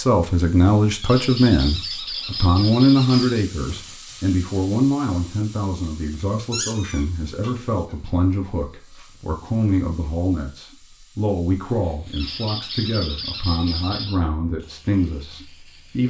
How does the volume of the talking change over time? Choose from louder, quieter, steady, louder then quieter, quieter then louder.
quieter.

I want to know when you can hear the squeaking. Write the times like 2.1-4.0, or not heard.
1.0-3.5, 6.5-7.5, 12.1-14.2.